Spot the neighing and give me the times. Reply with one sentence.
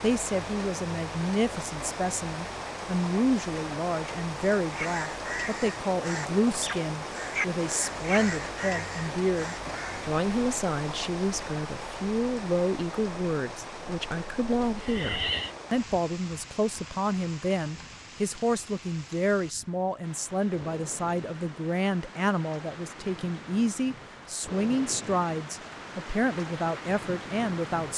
The neighing can be heard from 14.7 to 15.6 s.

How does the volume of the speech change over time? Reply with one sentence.
The loudness of the speech stays about the same.